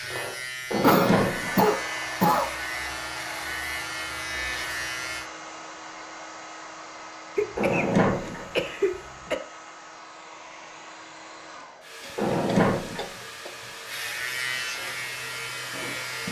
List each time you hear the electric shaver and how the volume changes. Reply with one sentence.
The electric shaver can be heard from 0.0 to 5.3 s, at a steady volume; and briefly from 13.8 to 16.2 s.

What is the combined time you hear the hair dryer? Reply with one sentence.
You can hear the hair dryer for 16 seconds altogether.